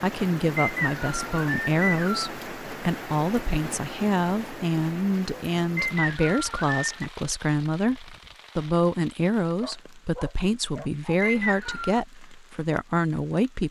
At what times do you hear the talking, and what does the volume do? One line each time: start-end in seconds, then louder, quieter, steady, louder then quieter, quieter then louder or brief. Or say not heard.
0.0-13.6 steady.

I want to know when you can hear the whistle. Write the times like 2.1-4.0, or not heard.
0.6-2.4, 5.8-7.0, 11.2-12.0.